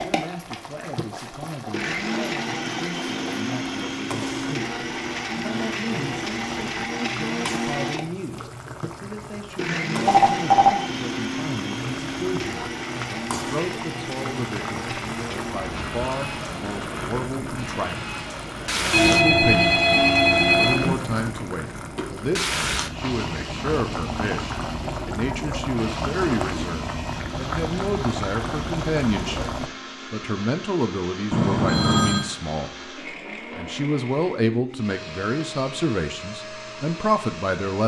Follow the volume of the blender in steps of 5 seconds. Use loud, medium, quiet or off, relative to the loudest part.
loud, loud, loud, medium, medium, medium, medium, medium.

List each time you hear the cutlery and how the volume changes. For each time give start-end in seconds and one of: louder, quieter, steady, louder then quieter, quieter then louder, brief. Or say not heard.
not heard.